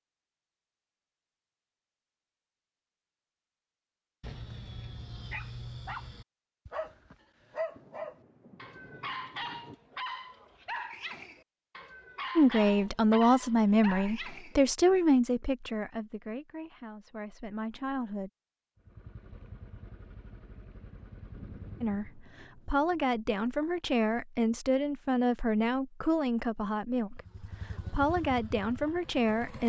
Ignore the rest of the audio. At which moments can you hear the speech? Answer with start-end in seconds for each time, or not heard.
12.3-18.3, 21.8-29.6.